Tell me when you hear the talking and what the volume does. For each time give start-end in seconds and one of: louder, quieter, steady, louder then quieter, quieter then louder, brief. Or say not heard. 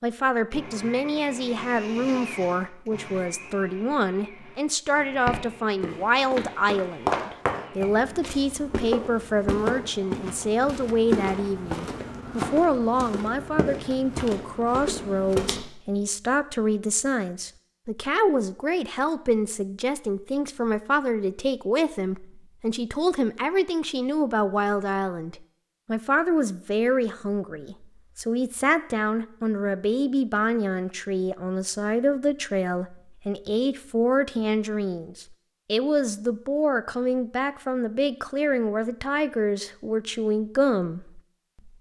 0.0-41.7 steady.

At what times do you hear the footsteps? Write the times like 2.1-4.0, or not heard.
5.2-15.7.